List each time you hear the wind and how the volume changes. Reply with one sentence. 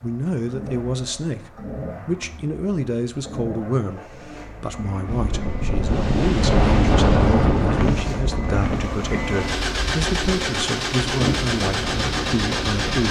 The wind can be heard from 5.0 to 13.0 s, getting quieter then louder.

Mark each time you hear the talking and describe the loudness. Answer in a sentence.
The talking can be heard from 0.0 to 13.0 s, at a steady volume.